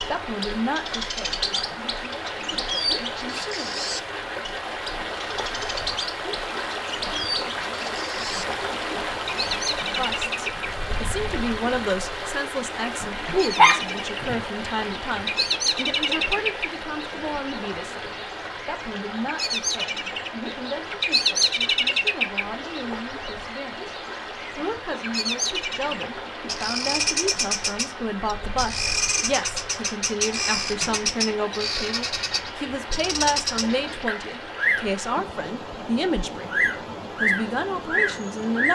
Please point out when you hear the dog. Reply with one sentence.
You can hear the dog from 13.6 to 14.4 s.